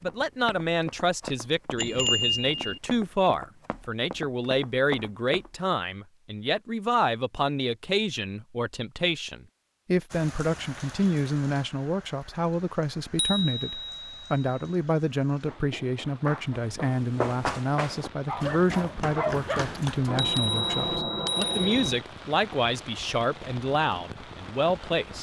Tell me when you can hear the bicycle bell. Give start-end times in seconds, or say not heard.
1.8-2.8, 13.2-14.7, 20.1-22.0.